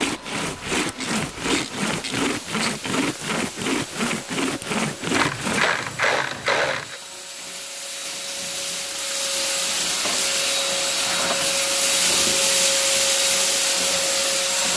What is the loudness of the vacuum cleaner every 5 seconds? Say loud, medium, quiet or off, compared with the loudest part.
quiet, medium, loud.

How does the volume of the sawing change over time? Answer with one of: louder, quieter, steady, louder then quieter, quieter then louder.
steady.